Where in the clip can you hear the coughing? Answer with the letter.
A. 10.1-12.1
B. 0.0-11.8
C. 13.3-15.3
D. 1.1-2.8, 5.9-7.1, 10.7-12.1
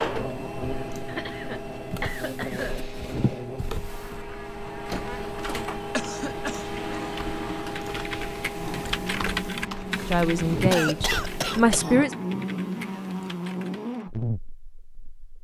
D.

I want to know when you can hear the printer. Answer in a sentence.
The printer can be heard from 0.0 to 11.8 s.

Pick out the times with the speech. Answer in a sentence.
You can hear the speech from 10.1 to 12.1 s.